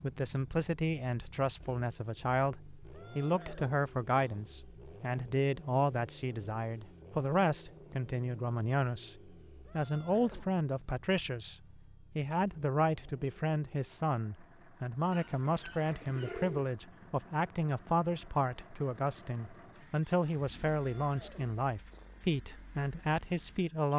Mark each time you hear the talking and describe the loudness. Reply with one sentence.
You can hear the talking from 0.0 to 23.9 s, at a steady volume.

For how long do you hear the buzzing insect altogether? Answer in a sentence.
The buzzing insect can't be heard in this clip.